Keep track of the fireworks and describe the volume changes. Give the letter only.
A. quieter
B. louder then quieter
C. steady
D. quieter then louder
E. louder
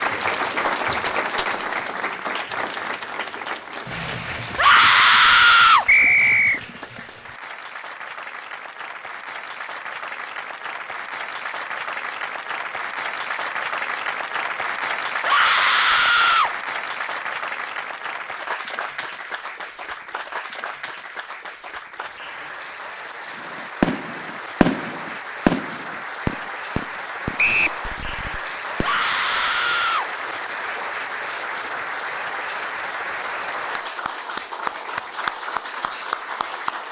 A.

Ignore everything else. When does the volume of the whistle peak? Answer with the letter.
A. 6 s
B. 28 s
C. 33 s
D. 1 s
A.